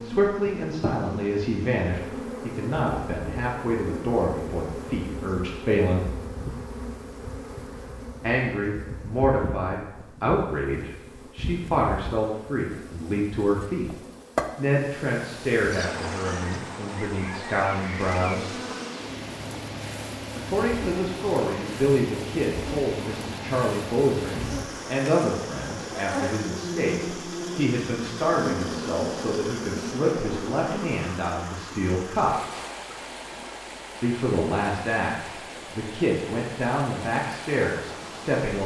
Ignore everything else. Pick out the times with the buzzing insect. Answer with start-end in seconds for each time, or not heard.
0.0-31.0.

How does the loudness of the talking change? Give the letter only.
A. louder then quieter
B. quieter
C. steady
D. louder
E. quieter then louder
C.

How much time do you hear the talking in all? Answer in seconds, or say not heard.
32 s.